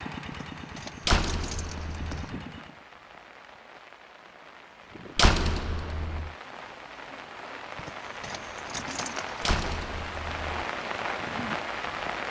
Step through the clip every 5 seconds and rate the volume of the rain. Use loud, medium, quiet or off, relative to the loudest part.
quiet, medium, loud.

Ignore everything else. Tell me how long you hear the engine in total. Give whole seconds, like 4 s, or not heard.
3 s.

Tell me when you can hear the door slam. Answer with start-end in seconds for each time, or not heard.
1.1-2.2, 5.2-6.3, 9.4-10.7.